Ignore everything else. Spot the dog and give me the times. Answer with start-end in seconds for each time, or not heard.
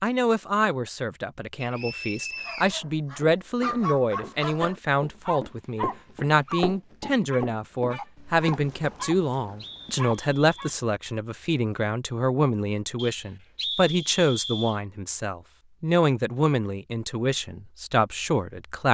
2.3-9.2, 9.9-10.7.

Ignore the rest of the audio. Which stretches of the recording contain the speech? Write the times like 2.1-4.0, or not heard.
0.0-18.8.